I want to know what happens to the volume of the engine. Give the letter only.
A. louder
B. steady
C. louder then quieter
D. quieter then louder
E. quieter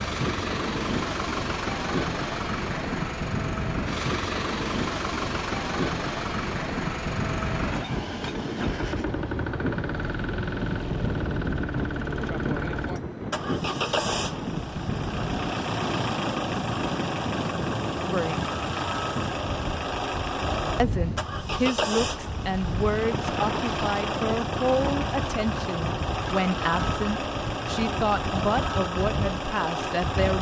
B.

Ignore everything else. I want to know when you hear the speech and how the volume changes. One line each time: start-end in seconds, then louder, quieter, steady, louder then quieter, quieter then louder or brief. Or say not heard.
18.0-18.4 brief
20.8-30.3 steady.